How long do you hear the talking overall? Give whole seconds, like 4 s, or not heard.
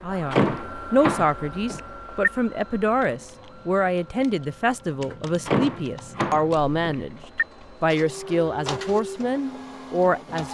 10 s.